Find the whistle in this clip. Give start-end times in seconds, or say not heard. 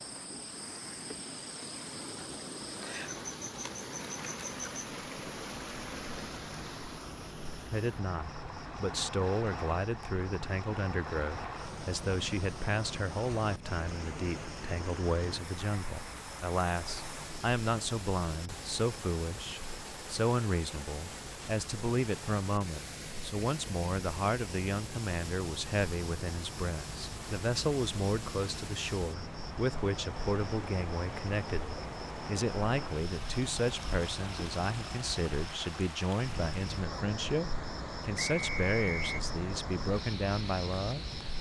38.1-39.2.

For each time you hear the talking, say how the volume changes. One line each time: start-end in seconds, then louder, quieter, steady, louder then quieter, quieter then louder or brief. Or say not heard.
7.7-41.0 steady.